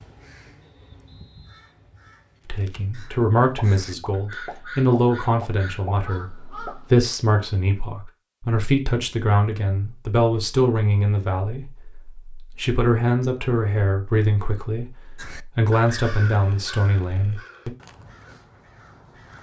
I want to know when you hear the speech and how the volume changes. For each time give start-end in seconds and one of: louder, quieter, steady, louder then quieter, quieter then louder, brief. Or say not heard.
2.5-17.7 steady.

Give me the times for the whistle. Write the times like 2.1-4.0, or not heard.
0.6-1.9.